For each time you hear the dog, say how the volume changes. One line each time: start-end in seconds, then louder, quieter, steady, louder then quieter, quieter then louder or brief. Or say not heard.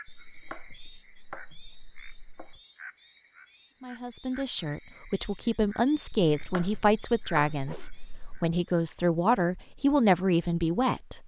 not heard.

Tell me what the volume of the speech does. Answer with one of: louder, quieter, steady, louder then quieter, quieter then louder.
louder.